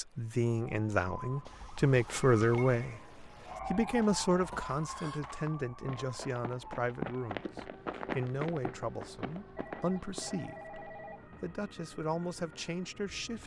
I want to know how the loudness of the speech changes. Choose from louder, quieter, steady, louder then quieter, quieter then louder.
quieter.